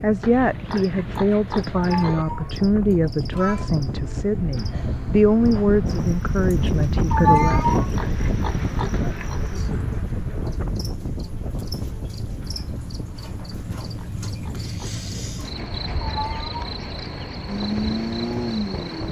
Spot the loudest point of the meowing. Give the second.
7 s.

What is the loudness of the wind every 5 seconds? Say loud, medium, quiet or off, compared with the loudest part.
medium, loud, medium, medium.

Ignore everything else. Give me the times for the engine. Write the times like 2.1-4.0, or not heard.
17.4-19.0.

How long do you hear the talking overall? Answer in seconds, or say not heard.
8 s.